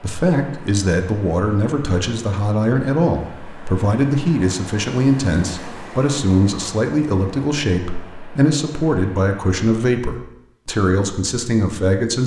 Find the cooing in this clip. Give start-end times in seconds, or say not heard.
not heard.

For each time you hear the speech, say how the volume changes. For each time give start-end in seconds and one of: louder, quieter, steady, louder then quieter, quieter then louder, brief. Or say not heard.
0.0-12.2 steady.